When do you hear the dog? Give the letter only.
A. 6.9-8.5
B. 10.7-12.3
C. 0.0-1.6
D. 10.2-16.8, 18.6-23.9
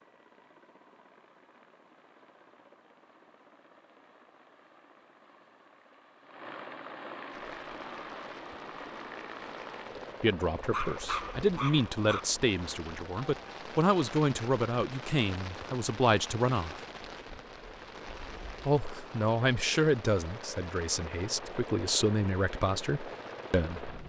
B.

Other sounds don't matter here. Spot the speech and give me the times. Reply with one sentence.
The speech can be heard from 10.2 to 16.8 s and from 18.6 to 23.9 s.